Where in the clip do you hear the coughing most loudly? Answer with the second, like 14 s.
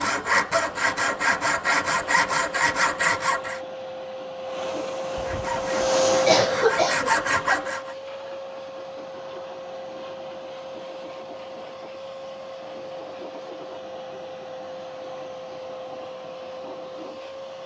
6 s.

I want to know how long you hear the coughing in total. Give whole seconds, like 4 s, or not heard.
2 s.